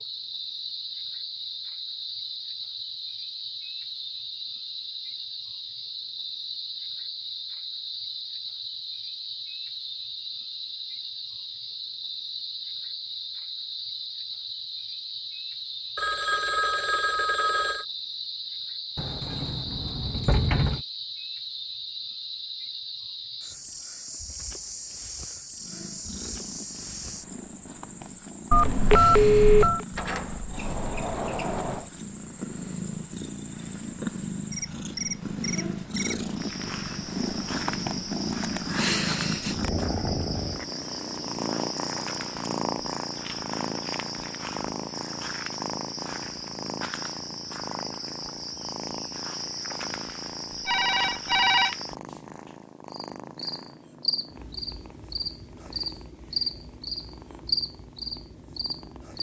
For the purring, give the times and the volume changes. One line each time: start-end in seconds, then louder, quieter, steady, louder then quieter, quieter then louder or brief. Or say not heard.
25.6-59.1 louder then quieter.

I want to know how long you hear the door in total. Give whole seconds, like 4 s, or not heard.
4 s.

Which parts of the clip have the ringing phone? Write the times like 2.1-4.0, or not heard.
15.9-17.9, 28.5-29.9, 50.6-51.8.